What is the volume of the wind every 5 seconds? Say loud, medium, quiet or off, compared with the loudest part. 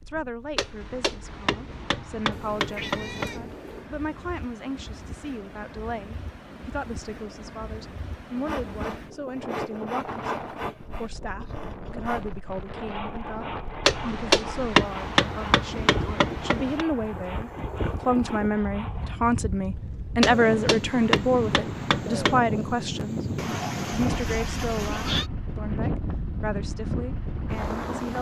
quiet, medium, medium, medium, loud, loud.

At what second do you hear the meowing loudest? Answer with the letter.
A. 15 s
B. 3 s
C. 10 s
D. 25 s
D.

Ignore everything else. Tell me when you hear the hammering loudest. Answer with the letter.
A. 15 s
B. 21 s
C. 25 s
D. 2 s
A.